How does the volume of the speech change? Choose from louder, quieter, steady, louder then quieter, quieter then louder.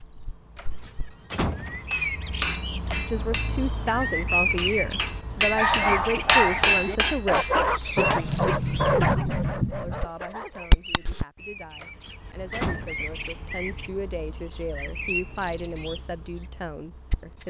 quieter then louder.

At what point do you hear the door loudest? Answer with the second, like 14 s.
9 s.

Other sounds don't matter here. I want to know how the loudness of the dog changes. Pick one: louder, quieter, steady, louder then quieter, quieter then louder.
quieter.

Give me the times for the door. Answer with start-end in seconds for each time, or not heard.
0.6-1.9, 8.0-10.1, 11.8-12.9.